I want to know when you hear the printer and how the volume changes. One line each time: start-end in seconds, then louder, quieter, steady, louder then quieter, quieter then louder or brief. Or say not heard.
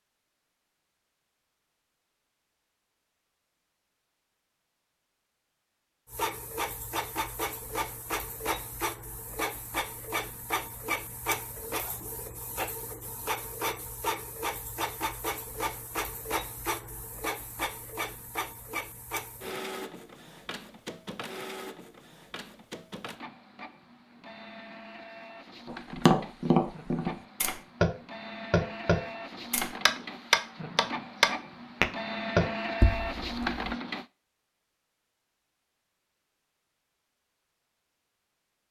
6.0-34.0 quieter then louder.